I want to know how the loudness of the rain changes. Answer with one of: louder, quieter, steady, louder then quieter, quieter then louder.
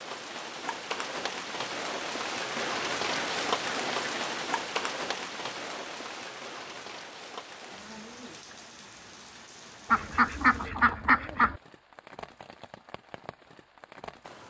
quieter.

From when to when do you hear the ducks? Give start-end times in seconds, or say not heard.
2.5-4.3, 9.9-11.6.